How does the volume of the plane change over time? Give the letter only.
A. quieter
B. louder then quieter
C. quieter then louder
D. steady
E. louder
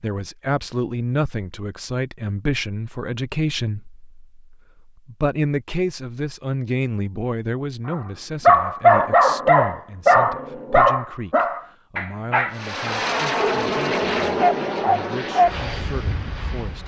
A.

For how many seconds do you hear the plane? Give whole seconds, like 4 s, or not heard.
4 s.